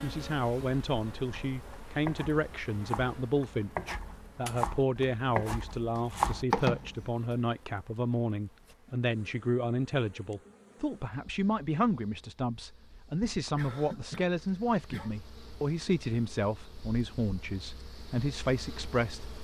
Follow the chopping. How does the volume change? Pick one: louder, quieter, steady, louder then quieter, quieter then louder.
louder.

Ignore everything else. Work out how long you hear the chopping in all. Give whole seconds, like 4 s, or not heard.
6 s.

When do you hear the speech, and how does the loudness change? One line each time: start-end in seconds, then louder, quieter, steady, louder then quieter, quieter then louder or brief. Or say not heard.
0.0-19.2 steady.